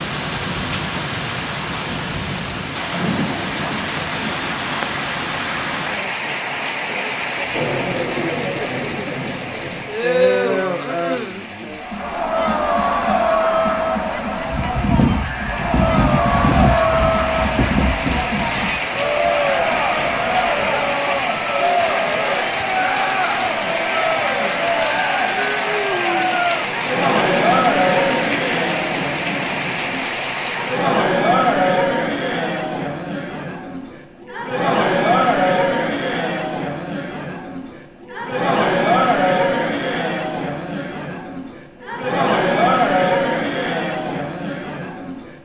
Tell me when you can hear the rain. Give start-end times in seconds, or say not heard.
0.0-31.1.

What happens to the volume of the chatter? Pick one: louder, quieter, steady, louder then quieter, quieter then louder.
steady.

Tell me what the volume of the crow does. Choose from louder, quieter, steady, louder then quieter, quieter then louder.
quieter.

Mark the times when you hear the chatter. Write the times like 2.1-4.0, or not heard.
7.5-45.4.